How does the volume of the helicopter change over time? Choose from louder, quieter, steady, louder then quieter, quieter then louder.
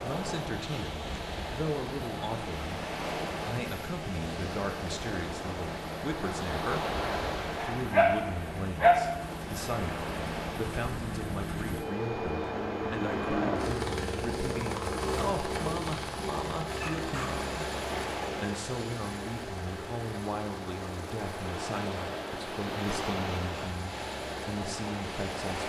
louder then quieter.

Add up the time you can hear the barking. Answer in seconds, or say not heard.
2 s.